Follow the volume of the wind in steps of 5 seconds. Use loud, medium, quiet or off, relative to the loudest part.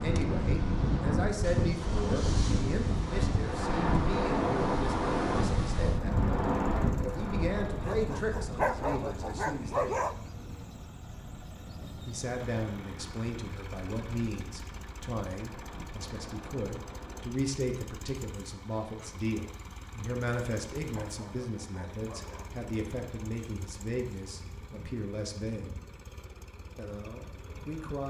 loud, loud, quiet, quiet, off, off.